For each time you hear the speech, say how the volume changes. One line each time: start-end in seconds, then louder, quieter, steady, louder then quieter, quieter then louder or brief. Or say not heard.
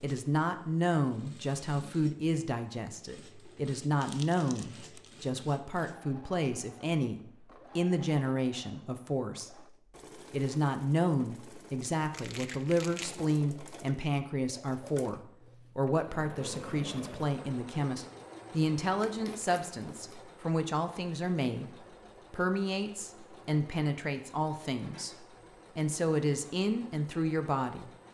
0.0-27.9 steady.